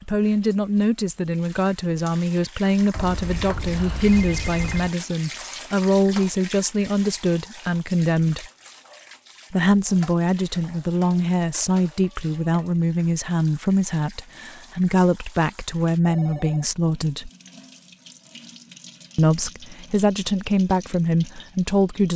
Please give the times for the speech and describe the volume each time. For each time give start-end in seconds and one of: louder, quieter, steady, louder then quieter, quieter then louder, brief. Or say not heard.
0.0-8.4 steady
9.5-17.3 steady
19.1-22.1 brief.